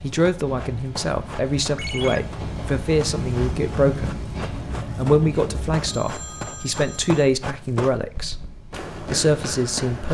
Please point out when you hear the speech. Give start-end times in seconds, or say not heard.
0.0-4.2, 5.0-10.0.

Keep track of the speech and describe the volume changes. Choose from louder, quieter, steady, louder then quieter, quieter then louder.
steady.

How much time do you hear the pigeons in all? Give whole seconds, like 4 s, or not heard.
not heard.